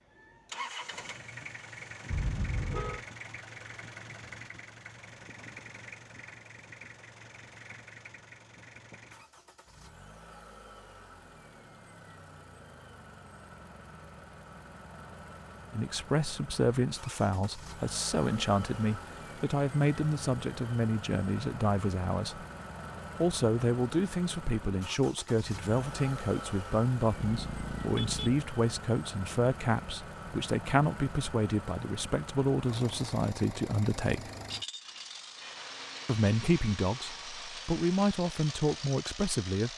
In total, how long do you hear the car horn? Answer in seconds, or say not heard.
2 s.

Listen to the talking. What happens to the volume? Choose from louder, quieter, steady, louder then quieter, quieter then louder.
steady.